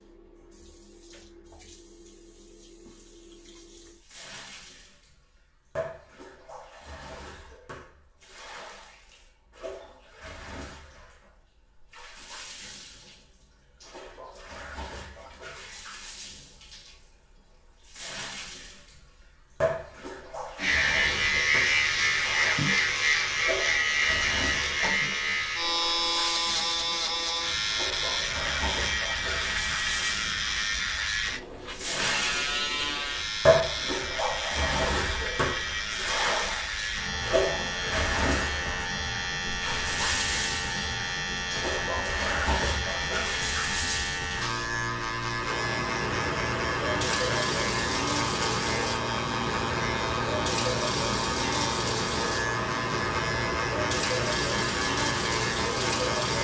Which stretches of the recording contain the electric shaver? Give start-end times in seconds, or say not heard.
20.6-56.3.